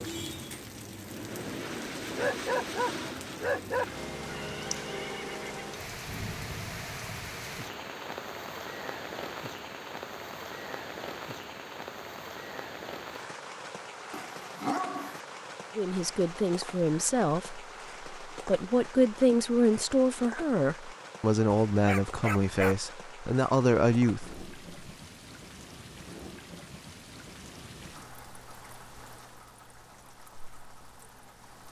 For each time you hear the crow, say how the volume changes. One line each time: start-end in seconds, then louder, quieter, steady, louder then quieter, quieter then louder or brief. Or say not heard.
not heard.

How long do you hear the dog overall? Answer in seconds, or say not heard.
4 s.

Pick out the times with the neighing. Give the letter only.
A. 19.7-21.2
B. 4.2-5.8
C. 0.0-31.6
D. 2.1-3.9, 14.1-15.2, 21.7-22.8
B.